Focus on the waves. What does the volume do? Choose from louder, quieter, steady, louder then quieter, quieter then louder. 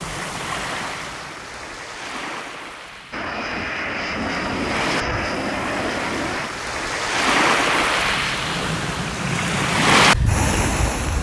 quieter then louder.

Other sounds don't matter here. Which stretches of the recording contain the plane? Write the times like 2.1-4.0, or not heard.
3.1-6.5.